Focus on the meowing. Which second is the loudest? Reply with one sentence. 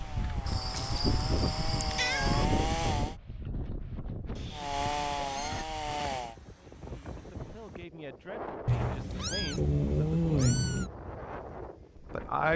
The volume of the meowing peaks at 10 seconds.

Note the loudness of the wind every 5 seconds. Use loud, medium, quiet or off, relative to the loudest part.
loud, medium, medium.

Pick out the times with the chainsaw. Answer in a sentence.
The chainsaw can be heard from 0.0 to 3.1 s and from 4.5 to 6.3 s.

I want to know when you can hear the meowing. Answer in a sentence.
The meowing can be heard from 0.5 to 2.5 s, from 4.3 to 5.7 s and from 8.7 to 10.9 s.